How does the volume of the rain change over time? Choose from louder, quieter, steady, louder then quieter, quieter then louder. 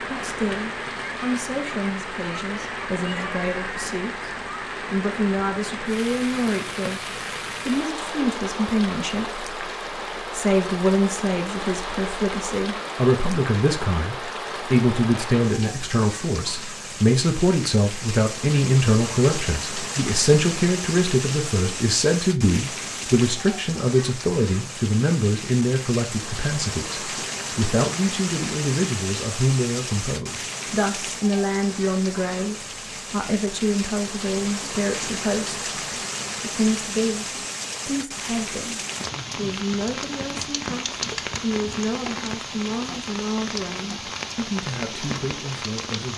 steady.